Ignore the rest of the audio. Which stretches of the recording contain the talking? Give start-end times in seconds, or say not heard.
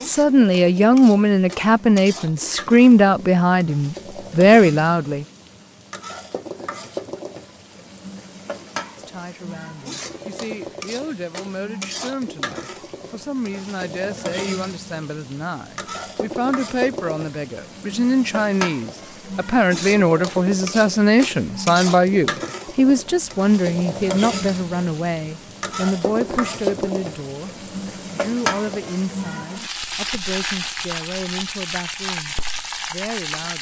0.1-5.2, 8.9-33.5.